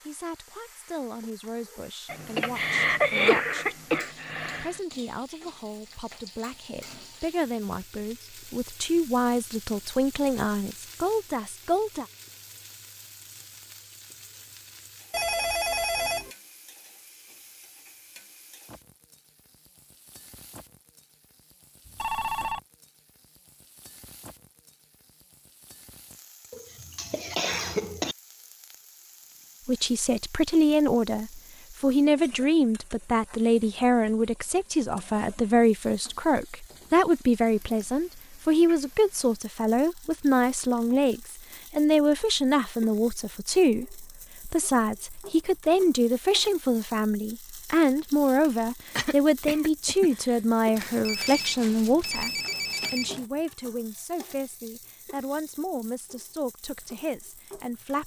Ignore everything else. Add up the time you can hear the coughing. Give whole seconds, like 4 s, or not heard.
6 s.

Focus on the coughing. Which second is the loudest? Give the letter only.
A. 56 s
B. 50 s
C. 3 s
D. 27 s
C.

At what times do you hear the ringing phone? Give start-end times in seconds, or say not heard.
15.1-16.3, 21.9-22.6, 50.8-53.2.